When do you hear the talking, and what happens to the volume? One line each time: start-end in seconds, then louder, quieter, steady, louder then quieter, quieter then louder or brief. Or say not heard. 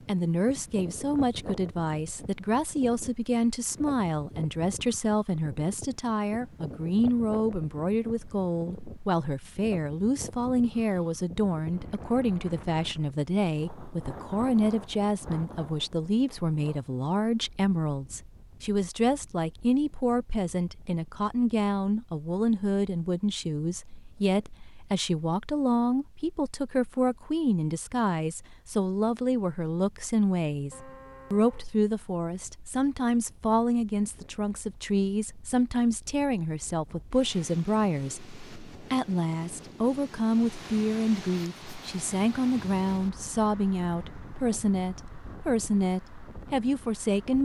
0.1-47.4 steady.